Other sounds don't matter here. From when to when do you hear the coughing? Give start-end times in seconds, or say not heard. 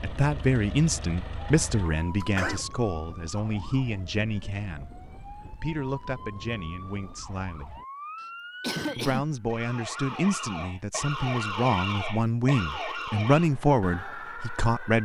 1.9-2.6, 8.2-9.3.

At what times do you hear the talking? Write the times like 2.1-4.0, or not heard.
0.0-7.8, 8.9-14.9.